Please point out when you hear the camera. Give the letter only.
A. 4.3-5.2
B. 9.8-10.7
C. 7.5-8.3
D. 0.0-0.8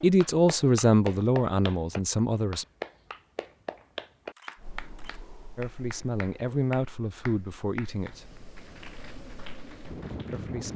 A.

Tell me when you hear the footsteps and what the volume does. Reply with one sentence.
The footsteps can't be heard in this clip.